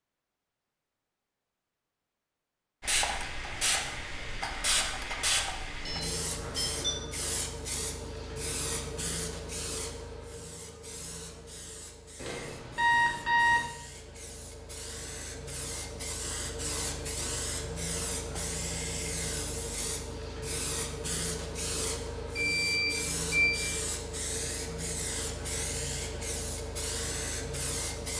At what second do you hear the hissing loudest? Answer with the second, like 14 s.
5 s.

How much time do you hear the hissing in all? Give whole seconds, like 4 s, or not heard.
25 s.